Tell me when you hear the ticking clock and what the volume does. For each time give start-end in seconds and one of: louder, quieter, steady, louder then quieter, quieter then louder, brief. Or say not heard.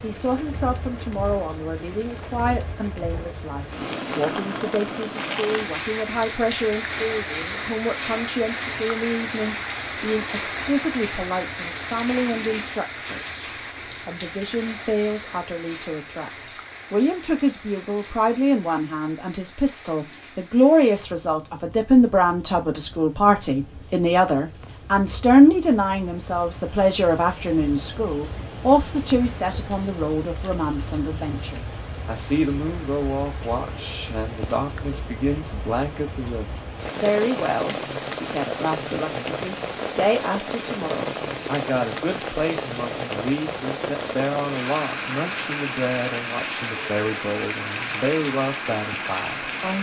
not heard.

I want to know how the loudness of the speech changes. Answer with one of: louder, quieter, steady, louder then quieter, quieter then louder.
louder then quieter.